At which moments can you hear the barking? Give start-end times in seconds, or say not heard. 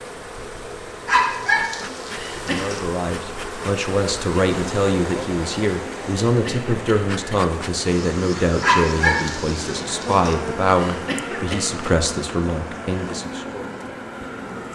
1.1-2.8, 8.6-10.3.